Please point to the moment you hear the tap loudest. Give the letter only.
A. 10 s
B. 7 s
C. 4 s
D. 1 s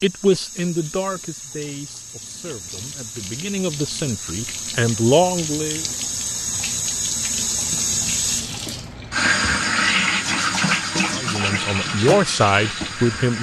A.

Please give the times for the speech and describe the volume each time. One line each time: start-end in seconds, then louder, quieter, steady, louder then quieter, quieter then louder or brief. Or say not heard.
0.0-5.8 quieter then louder
11.1-13.3 brief.